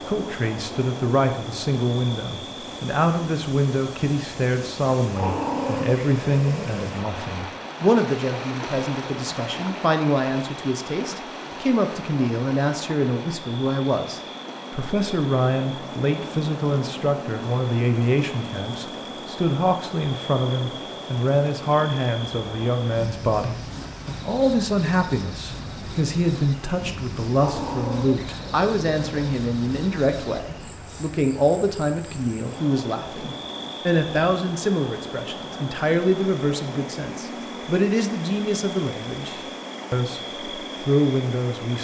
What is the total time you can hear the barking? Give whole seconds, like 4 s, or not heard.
4 s.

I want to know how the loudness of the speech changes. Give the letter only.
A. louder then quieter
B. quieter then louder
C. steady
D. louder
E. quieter
C.